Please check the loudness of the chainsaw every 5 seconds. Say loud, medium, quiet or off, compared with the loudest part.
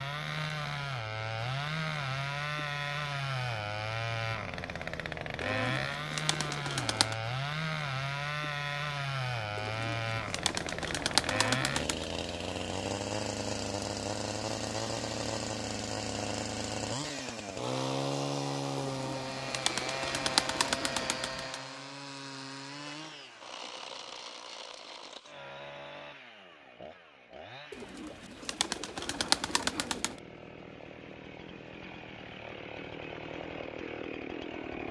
loud, loud, loud, loud, medium, quiet, medium.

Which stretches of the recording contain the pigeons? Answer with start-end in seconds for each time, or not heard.
5.4-7.2, 9.6-12.1, 18.8-21.6, 27.7-30.2.